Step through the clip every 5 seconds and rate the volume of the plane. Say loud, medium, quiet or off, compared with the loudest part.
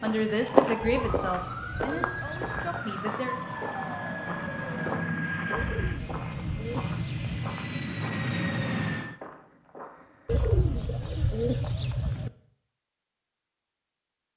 medium, loud, off.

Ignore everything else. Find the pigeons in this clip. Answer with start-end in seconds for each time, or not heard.
0.8-2.8, 5.5-7.3, 10.2-12.3.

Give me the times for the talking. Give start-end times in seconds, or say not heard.
0.0-3.4.